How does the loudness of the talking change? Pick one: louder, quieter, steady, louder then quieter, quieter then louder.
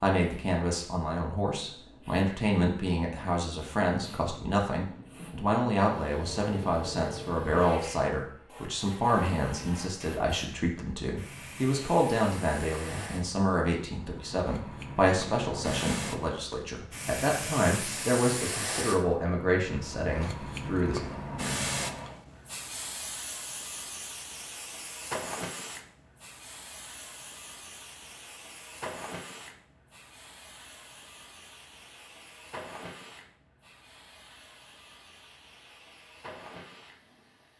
steady.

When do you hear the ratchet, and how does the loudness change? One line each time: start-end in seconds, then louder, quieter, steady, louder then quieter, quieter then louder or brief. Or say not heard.
not heard.